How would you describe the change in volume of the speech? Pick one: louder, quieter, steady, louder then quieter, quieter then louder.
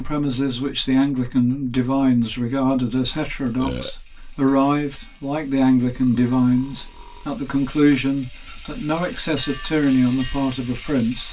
steady.